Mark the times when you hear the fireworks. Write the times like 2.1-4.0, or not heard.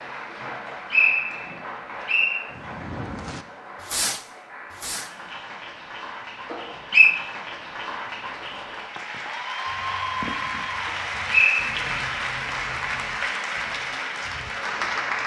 2.5-5.1, 8.8-13.9.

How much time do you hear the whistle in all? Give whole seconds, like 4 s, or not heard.
3 s.